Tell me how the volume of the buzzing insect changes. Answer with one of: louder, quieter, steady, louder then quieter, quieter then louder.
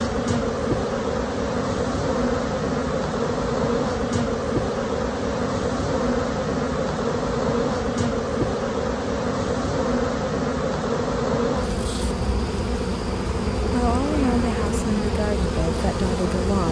steady.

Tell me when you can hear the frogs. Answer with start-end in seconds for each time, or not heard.
not heard.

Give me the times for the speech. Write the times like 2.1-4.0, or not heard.
13.7-16.6.